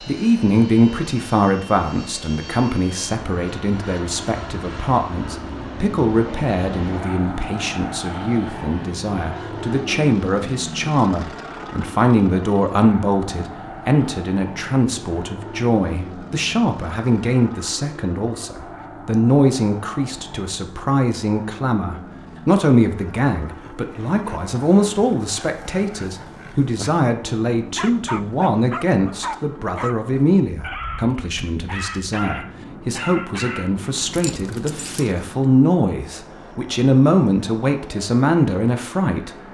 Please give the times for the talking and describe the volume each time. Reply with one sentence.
You can hear the talking from 0.1 to 39.3 s, at a steady volume.